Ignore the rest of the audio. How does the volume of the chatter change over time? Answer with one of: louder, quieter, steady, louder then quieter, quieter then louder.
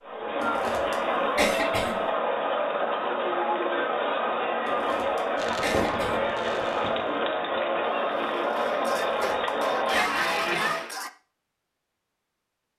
steady.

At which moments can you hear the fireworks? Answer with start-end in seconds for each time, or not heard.
5.3-11.1.